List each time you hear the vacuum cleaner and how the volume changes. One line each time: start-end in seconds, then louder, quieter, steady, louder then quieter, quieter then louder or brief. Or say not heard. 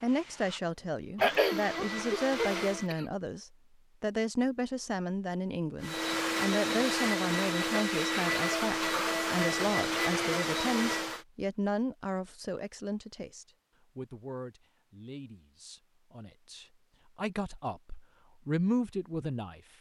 0.0-2.9 brief
5.8-11.2 steady.